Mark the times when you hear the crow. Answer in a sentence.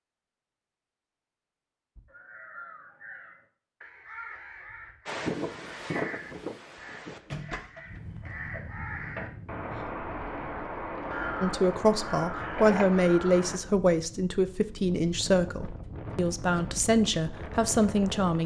The crow can be heard from 1.9 to 13.6 s.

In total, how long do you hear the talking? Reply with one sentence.
You can hear the talking for 7 seconds altogether.